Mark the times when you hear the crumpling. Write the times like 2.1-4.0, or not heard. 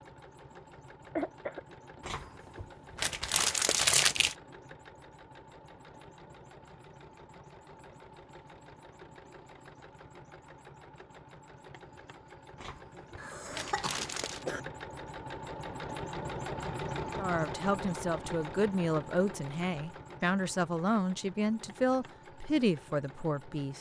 2.0-4.3, 12.6-14.4.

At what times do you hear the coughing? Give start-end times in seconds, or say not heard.
1.0-1.6, 13.2-14.6.